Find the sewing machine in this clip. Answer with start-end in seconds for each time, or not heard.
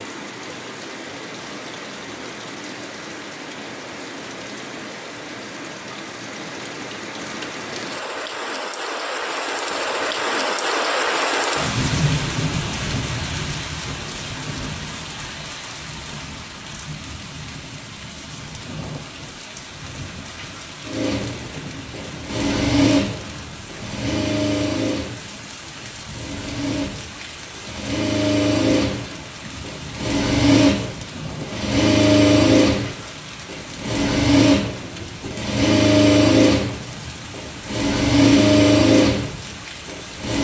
20.9-40.3.